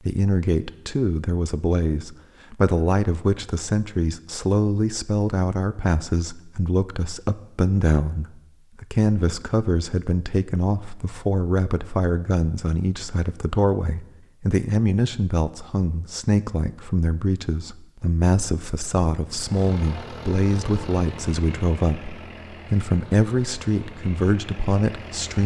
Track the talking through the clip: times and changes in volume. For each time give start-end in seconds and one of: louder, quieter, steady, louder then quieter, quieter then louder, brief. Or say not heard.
0.1-25.4 steady.